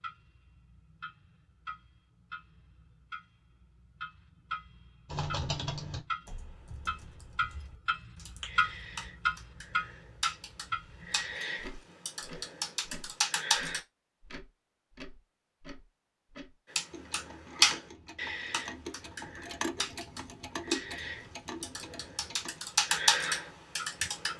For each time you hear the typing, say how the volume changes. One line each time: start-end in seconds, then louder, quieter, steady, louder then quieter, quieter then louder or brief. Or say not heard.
5.1-13.8 quieter then louder
16.8-24.3 quieter then louder.